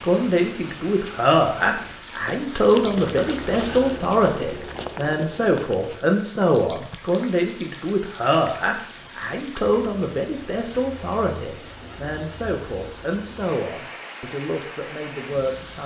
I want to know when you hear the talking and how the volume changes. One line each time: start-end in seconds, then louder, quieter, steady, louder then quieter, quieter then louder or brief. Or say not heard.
0.0-15.8 quieter.